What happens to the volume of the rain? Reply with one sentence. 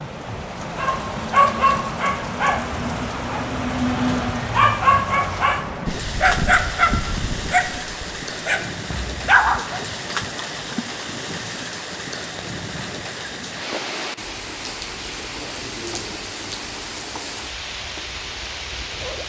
The loudness of the rain stays about the same.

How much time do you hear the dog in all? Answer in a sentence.
The dog can be heard for 9 seconds in total.